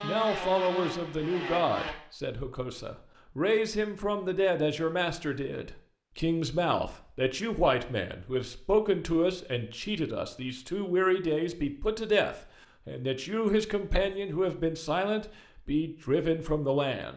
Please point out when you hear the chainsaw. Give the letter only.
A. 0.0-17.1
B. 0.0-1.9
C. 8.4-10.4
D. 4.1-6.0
B.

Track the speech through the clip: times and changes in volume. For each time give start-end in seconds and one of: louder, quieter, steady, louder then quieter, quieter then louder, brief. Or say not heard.
0.0-17.1 steady.